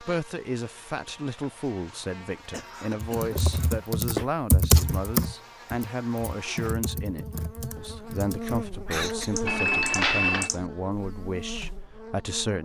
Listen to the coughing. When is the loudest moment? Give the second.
9 s.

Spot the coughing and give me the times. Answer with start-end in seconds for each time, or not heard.
2.5-3.7, 8.4-9.4.